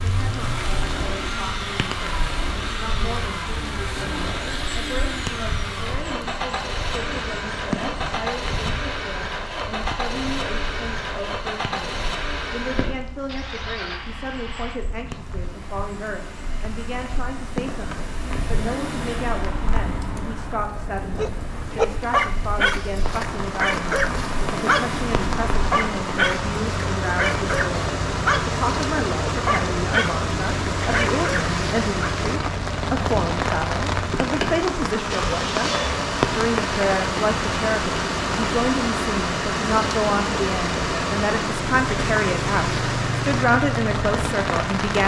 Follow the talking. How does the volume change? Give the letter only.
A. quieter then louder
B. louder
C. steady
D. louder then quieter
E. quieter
B.